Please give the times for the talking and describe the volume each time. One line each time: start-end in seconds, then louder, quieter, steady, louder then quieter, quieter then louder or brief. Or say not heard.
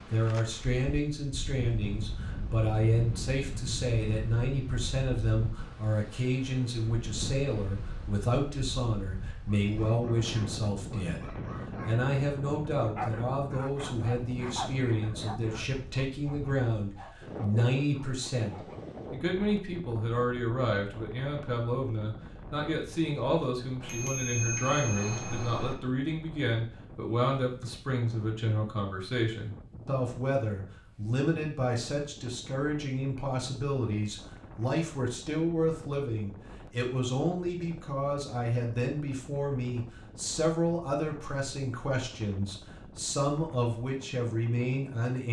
0.1-45.2 steady.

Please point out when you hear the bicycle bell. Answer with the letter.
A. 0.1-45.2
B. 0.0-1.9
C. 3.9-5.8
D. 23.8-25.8
D.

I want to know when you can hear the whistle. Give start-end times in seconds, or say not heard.
not heard.